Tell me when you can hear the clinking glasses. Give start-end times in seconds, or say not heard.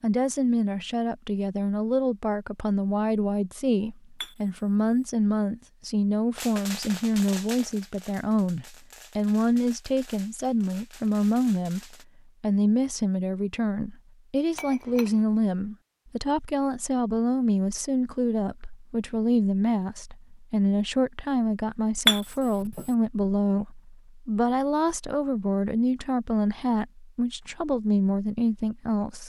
4.2-5.0, 14.6-15.2, 22.1-22.9.